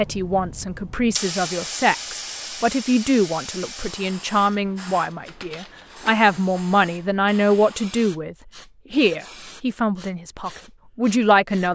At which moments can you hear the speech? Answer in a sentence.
The speech can be heard from 0.0 to 11.7 s.